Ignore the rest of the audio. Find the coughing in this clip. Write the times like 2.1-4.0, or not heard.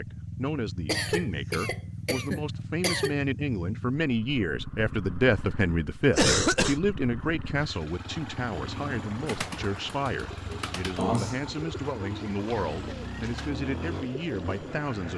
0.8-3.1, 6.1-6.8, 10.9-11.6.